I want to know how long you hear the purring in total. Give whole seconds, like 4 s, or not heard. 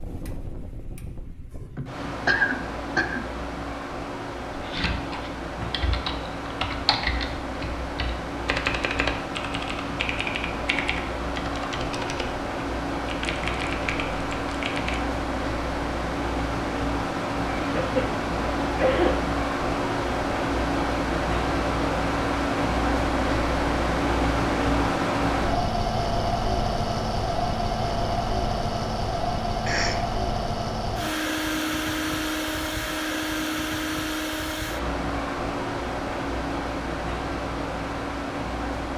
not heard.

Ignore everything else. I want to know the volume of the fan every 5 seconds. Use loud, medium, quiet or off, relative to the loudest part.
medium, medium, medium, loud, loud, loud, loud, medium.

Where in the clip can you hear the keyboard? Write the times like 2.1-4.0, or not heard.
4.5-15.1.